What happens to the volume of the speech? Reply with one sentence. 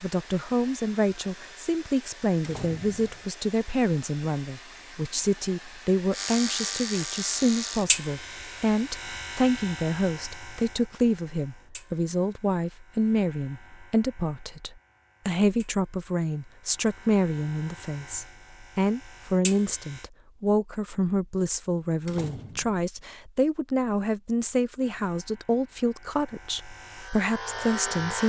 The loudness of the speech stays about the same.